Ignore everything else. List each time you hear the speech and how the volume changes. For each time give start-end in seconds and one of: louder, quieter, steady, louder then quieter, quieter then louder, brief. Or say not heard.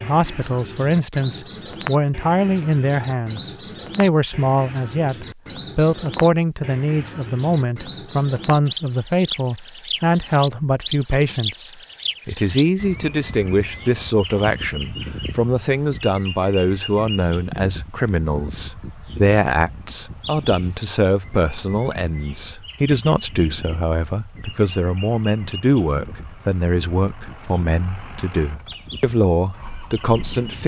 0.0-30.6 steady.